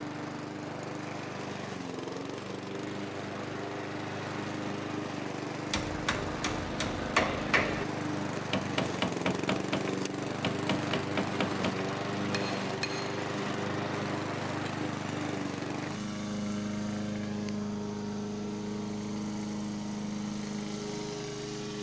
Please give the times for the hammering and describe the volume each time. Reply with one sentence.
The hammering can be heard from 5.7 to 13.2 s, getting quieter.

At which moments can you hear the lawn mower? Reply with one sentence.
You can hear the lawn mower from 0.0 to 21.7 s.